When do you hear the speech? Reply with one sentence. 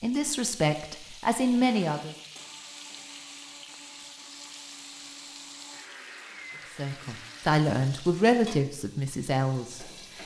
The speech can be heard from 0.0 to 2.1 s and from 6.8 to 10.2 s.